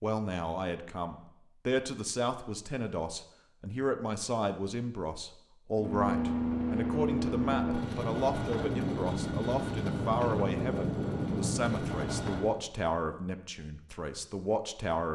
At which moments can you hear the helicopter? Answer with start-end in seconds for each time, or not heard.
5.8-12.6.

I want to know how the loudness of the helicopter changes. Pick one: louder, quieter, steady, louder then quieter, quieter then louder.
steady.